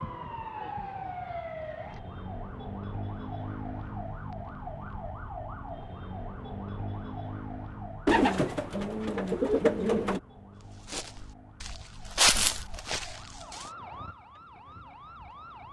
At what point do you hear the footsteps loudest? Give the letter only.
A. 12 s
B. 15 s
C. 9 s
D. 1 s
A.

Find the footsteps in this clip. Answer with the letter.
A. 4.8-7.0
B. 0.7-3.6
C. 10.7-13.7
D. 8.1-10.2
C.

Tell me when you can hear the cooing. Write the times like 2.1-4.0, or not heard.
8.1-10.2.